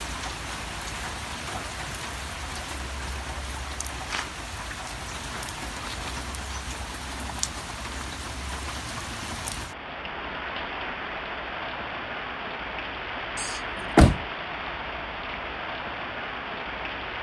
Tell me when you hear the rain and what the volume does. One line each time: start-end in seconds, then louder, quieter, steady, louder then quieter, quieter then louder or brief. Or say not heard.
0.0-17.1 steady.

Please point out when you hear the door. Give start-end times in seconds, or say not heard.
13.3-14.2.